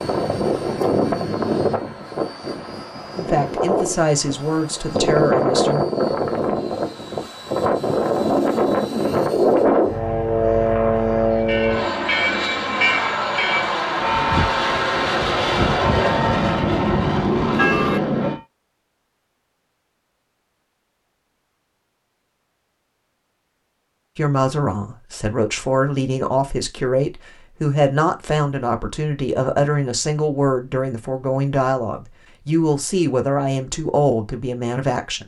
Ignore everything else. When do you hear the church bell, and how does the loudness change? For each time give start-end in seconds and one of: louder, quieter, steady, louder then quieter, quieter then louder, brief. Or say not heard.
11.3-18.4 steady.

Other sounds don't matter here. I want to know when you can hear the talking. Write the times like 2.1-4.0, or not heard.
3.1-5.8, 24.1-35.2.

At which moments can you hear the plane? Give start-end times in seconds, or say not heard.
0.0-18.4.